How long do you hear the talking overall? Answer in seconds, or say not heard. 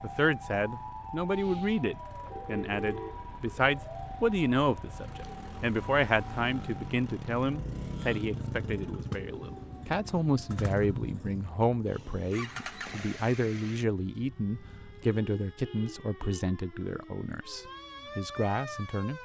19 s.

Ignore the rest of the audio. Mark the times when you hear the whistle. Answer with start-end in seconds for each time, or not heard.
not heard.